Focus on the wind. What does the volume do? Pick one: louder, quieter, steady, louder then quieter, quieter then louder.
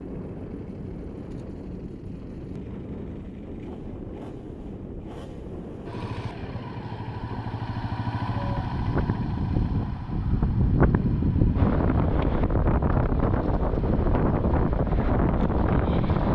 louder.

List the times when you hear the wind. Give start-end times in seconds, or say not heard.
0.0-16.2.